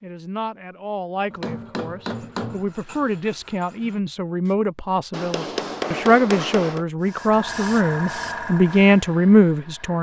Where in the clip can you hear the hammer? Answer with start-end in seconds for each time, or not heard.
1.3-2.7, 5.1-6.8.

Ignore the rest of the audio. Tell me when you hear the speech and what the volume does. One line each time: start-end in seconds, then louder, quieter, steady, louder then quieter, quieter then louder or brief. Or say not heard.
0.0-9.9 louder.